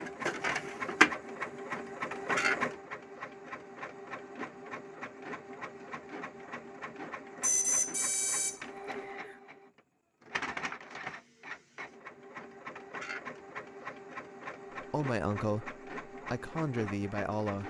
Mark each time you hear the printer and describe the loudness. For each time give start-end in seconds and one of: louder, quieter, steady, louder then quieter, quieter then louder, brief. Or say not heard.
0.0-17.6 quieter.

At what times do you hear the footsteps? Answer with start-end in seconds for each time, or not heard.
not heard.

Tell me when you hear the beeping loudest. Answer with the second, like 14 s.
8 s.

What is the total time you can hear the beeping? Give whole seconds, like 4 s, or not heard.
2 s.